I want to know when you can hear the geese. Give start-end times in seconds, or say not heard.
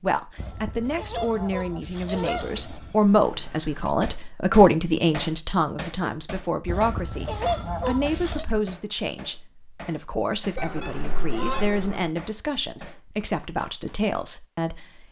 0.3-3.0, 6.7-8.4, 10.6-12.1.